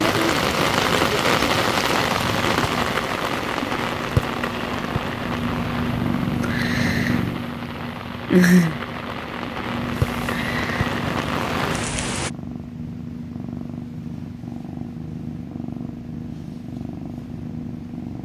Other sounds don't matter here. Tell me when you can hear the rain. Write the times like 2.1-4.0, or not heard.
0.0-12.3.